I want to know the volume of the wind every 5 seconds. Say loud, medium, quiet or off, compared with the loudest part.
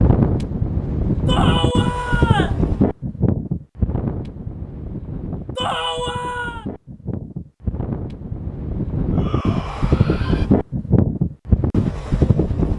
loud, medium, loud.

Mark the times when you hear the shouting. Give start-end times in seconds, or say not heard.
1.2-2.6, 5.5-6.7, 9.1-10.5.